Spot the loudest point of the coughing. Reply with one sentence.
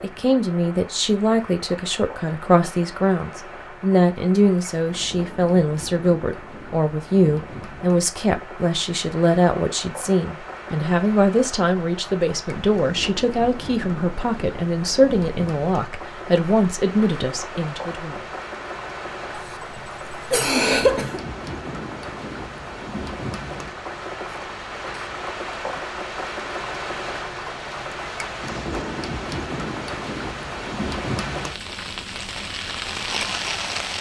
The loudest moment of the coughing is at 21 seconds.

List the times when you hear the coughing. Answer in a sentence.
You can hear the coughing from 19.3 to 21.2 s.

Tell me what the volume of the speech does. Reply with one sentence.
The volume of the speech stays about the same.